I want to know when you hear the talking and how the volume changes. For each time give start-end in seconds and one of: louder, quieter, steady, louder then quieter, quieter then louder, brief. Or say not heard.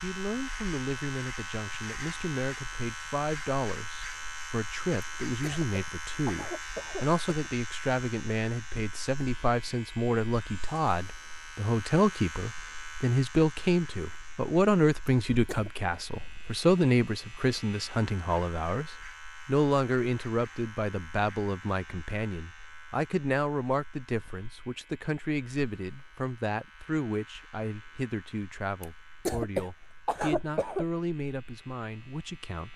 0.0-32.7 louder then quieter.